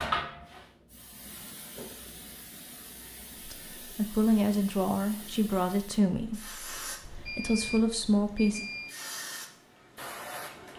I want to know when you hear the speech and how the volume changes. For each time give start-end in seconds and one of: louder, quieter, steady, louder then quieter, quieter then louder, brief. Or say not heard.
3.5-8.7 quieter then louder.